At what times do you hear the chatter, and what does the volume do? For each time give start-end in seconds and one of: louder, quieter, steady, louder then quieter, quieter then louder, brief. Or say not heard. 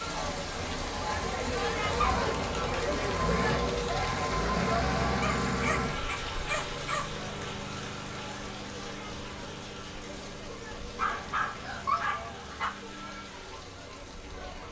0.0-14.6 quieter.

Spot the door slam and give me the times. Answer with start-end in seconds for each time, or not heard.
not heard.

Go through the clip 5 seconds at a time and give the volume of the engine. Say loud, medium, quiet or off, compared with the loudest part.
loud, loud, quiet.